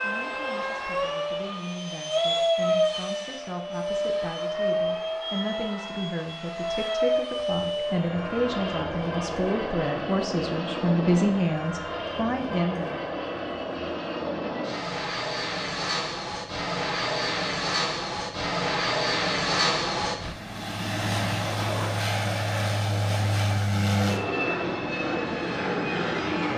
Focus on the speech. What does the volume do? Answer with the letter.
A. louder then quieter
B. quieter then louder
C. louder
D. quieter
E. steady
C.